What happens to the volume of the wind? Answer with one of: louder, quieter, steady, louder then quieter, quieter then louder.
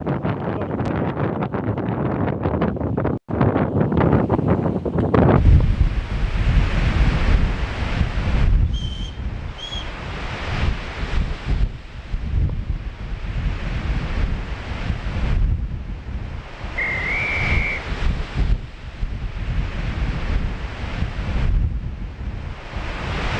quieter.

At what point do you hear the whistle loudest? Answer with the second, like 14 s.
17 s.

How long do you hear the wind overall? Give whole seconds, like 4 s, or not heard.
23 s.